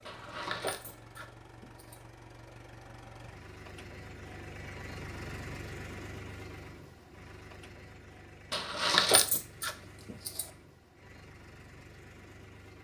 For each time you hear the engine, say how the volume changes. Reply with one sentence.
You can hear the engine from 0.0 to 12.7 s, getting louder then quieter.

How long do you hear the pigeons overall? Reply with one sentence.
The pigeons can't be heard in this clip.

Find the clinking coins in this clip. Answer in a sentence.
You can hear the clinking coins from 0.1 to 2.0 s and from 8.5 to 10.4 s.